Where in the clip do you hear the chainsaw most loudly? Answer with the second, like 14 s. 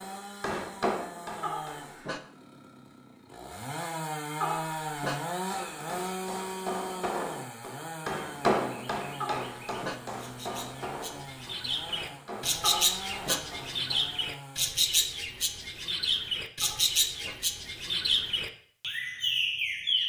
5 s.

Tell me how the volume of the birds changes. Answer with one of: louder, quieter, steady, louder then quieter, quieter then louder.
louder.